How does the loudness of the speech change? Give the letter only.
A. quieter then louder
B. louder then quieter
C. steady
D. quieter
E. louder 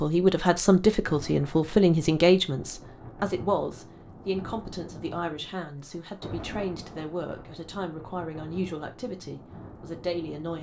D.